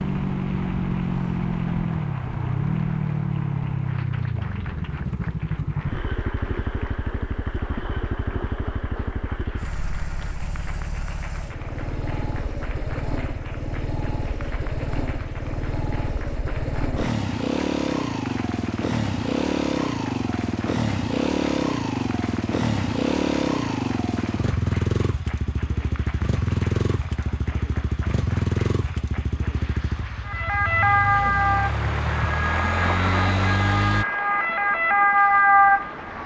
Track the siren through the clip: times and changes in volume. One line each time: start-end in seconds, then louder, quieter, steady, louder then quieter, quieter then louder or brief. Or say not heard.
30.2-36.2 quieter then louder.